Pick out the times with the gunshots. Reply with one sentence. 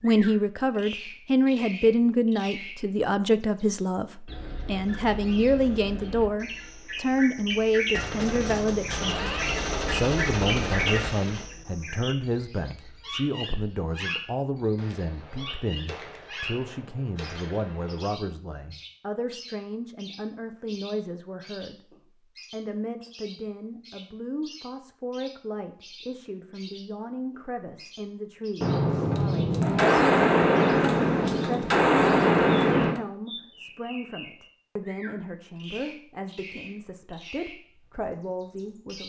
You can hear the gunshots from 7.9 to 11.5 s, from 14.8 to 18.1 s and from 28.6 to 33.0 s.